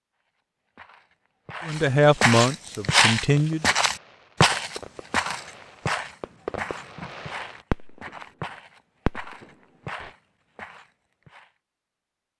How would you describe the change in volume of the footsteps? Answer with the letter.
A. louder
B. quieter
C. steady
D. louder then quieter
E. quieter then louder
B.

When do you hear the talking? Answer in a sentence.
You can hear the talking from 1.6 to 3.6 s.